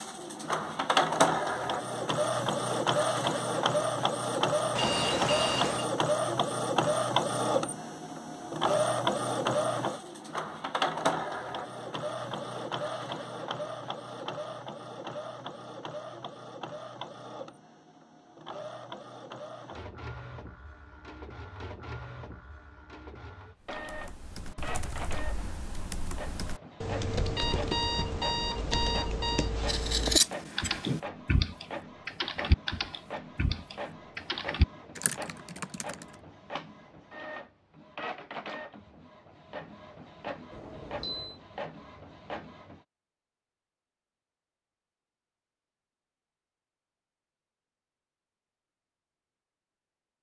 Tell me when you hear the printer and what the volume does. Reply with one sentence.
The printer can be heard from 0.0 to 42.9 s, getting quieter.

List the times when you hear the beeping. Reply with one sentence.
You can hear the beeping from 4.8 to 5.9 s, from 27.1 to 29.5 s and from 40.5 to 41.4 s.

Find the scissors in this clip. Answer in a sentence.
You can hear the scissors from 29.6 to 31.0 s.